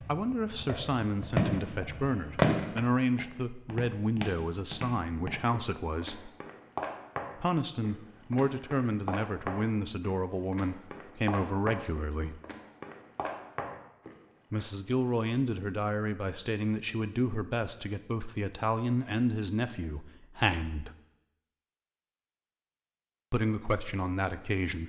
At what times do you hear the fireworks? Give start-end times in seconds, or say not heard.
0.0-2.9.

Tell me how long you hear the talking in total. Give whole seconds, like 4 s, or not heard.
19 s.